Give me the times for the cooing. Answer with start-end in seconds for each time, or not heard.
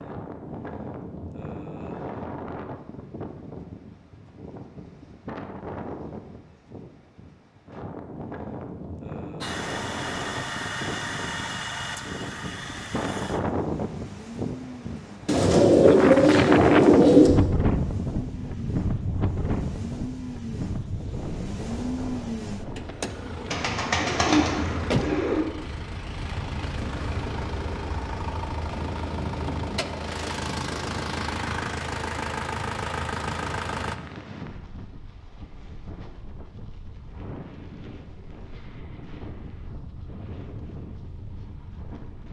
15.2-17.3, 23.5-25.4.